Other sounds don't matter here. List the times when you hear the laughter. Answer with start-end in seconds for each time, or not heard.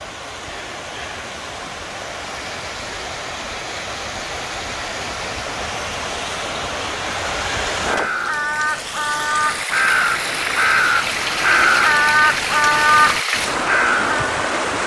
not heard.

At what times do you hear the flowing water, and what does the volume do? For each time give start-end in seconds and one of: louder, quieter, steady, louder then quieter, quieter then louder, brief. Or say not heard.
0.0-14.8 louder.